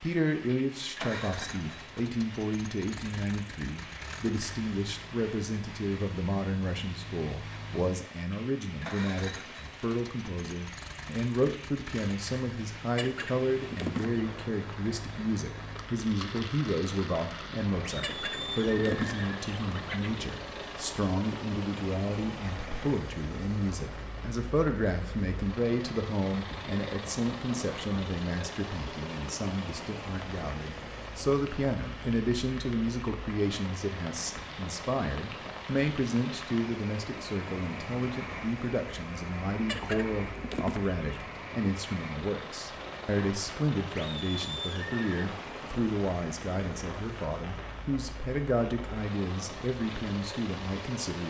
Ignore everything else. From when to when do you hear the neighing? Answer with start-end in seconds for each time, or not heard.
17.8-19.4, 44.0-45.2.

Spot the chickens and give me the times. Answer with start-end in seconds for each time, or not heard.
12.9-14.2, 18.0-20.1, 39.6-41.0.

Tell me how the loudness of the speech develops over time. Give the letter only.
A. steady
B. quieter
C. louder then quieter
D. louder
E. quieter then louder
A.